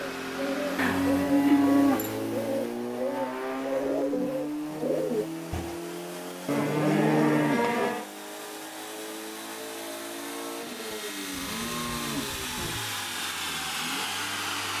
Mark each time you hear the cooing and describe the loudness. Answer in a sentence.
You can hear the cooing from 0.0 to 5.8 s, at a steady volume.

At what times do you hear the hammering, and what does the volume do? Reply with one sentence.
The hammering can't be heard in this clip.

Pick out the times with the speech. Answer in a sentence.
You can't hear the speech here.